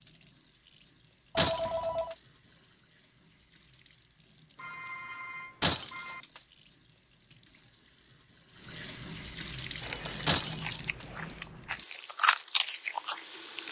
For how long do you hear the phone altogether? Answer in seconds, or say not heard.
4 s.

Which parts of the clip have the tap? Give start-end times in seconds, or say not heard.
0.0-13.6.